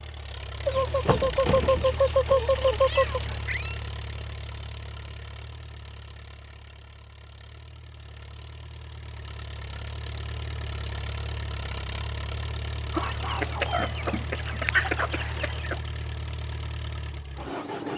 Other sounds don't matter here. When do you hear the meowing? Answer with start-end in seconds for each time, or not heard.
2.2-3.9.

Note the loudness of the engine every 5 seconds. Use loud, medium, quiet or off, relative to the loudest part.
loud, medium, loud, loud.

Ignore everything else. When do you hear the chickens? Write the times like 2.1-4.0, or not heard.
0.7-3.2, 12.9-15.8.